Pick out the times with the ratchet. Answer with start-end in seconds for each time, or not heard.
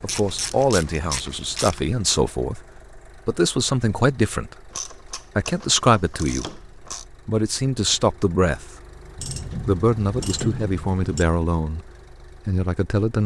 0.1-1.9, 4.7-7.0, 9.2-11.2.